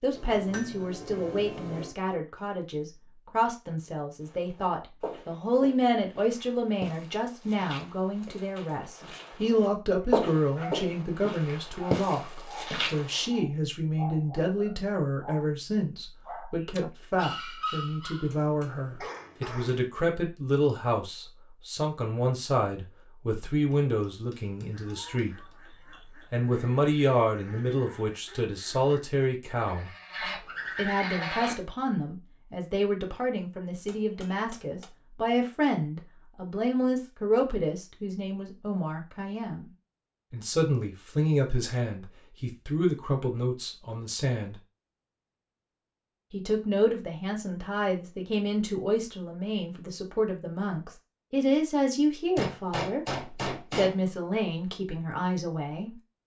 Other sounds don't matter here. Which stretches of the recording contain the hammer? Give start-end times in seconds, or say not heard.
0.1-1.9, 18.1-19.6, 23.5-25.6, 33.9-34.9, 52.4-54.0.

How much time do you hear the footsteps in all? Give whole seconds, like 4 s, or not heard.
9 s.